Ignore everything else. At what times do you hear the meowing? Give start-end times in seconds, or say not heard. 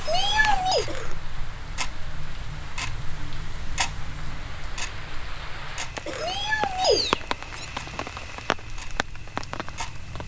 0.1-0.8, 6.2-7.7.